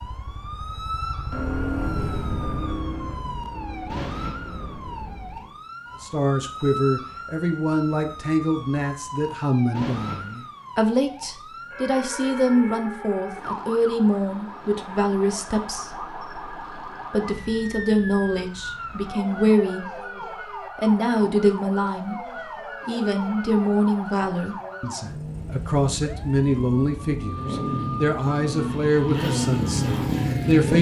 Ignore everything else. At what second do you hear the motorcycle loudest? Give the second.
30 s.